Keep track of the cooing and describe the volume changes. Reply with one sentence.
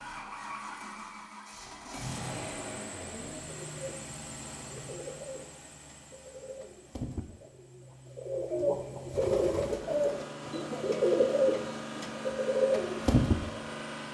The volume of the cooing goes up.